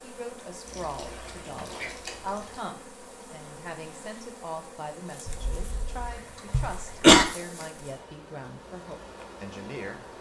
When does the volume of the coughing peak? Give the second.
7 s.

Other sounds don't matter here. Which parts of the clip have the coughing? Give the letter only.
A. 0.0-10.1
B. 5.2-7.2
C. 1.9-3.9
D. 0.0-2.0
B.